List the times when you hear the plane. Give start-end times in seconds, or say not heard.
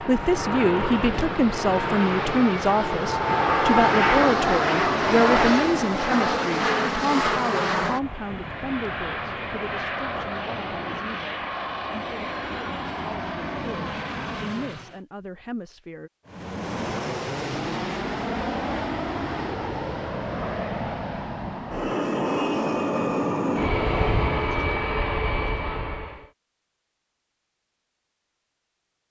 0.0-15.0, 16.2-26.3.